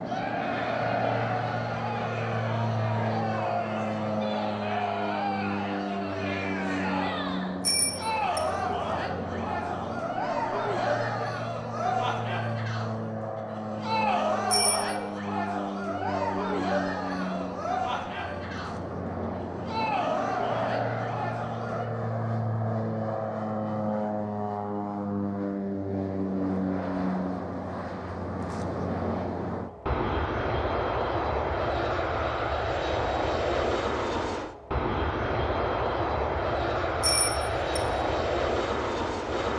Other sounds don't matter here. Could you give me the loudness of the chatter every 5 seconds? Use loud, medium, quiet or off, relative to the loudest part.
loud, loud, loud, loud, loud, off, off, off.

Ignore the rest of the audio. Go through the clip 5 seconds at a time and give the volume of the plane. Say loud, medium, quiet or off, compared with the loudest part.
loud, medium, medium, medium, loud, loud, loud, loud.